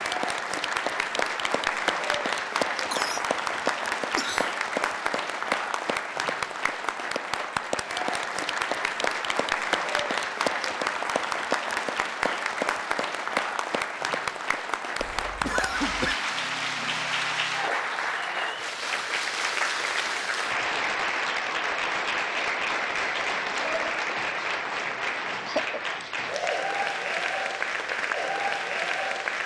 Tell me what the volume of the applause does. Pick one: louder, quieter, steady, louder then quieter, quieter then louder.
steady.